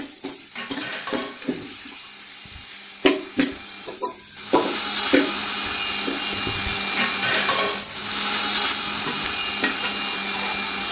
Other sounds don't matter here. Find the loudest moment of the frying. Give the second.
5 s.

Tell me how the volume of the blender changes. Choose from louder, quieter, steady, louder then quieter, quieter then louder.
louder.